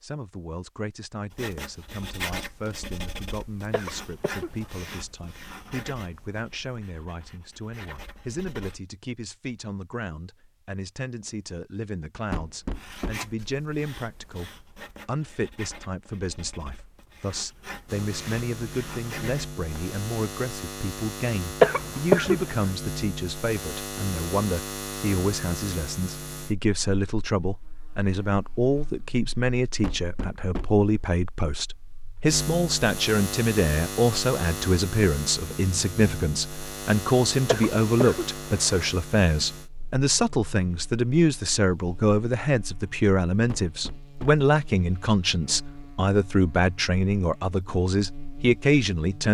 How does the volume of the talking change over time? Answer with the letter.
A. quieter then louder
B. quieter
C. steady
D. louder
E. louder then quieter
D.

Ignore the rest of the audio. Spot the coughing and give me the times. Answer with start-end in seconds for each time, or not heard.
3.7-4.8, 21.6-22.5, 37.5-38.9.